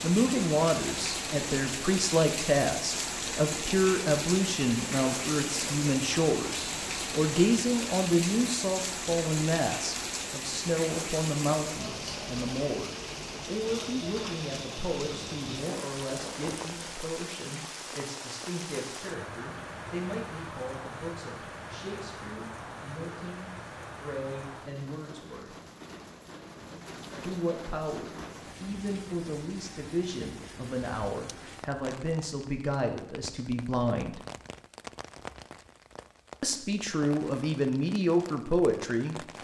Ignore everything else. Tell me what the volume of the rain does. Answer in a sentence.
The loudness of the rain goes down.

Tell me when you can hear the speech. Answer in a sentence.
The speech can be heard from 0.0 to 25.6 s, from 27.2 to 34.2 s and from 36.4 to 39.2 s.